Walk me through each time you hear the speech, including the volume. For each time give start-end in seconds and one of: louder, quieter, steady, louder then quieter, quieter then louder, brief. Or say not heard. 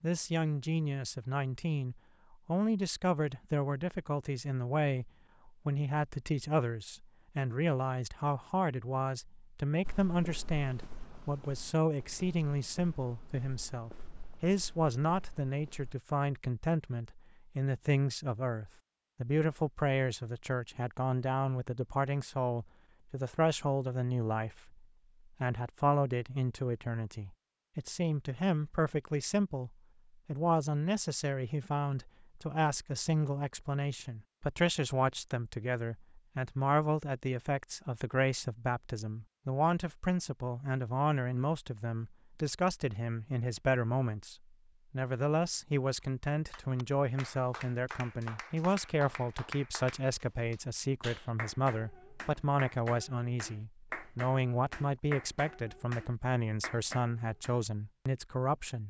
0.0-58.8 steady.